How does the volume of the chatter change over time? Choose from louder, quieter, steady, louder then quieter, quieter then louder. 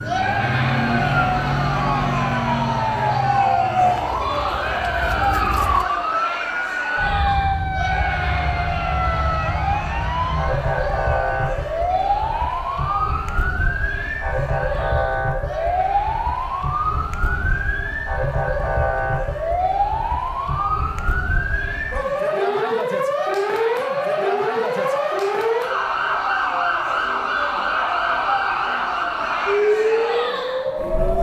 quieter then louder.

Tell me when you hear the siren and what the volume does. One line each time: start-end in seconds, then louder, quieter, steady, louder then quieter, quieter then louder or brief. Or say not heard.
0.0-31.1 steady.